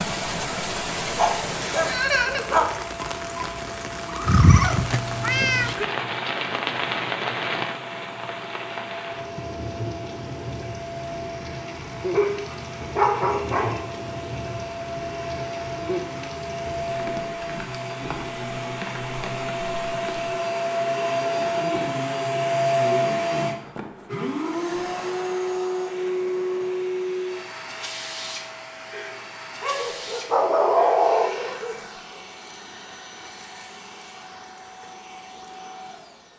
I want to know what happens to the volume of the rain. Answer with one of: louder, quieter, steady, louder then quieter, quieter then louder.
quieter.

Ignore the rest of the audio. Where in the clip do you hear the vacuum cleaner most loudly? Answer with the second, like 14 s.
23 s.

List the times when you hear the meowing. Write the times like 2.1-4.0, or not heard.
4.2-5.8.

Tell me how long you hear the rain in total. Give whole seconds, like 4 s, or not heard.
20 s.